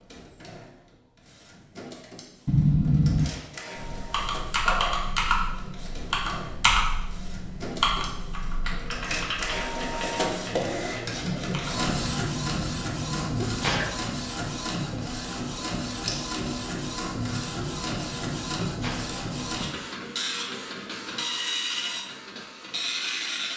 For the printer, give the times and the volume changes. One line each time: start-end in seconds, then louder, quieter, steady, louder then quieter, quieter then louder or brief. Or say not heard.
0.0-23.5 louder.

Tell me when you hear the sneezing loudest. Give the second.
3 s.